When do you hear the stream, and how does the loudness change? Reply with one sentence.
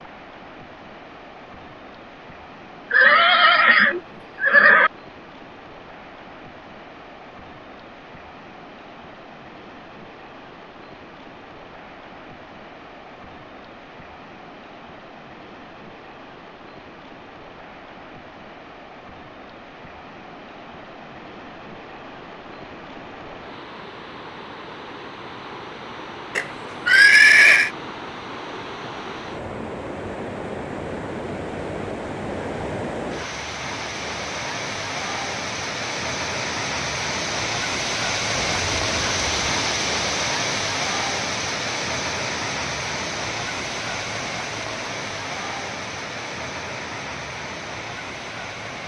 The stream can be heard from 0.0 to 48.8 s, getting louder.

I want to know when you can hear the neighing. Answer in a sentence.
The neighing can be heard from 2.9 to 4.9 s, from 26.4 to 27.7 s and from 38.4 to 39.6 s.